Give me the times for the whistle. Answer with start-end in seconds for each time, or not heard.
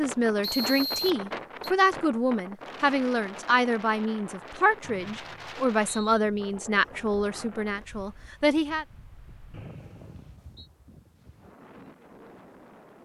0.4-1.7, 4.8-6.2, 9.5-10.7.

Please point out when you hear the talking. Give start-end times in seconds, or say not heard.
0.0-8.8.